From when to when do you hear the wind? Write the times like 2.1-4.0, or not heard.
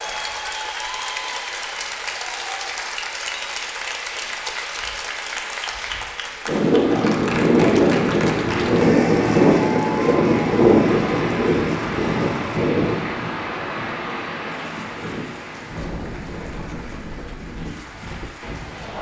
6.5-18.9.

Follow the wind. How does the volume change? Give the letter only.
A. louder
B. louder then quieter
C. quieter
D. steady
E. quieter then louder
C.